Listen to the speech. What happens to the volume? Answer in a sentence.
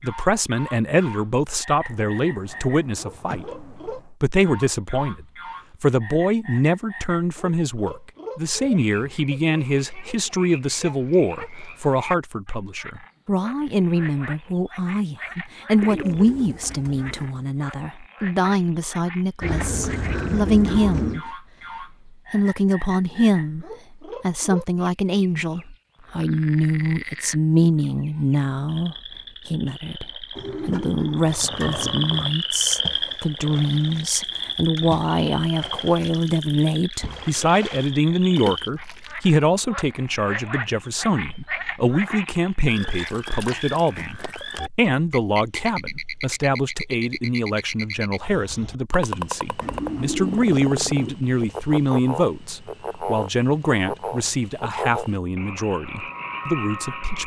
The loudness of the speech stays about the same.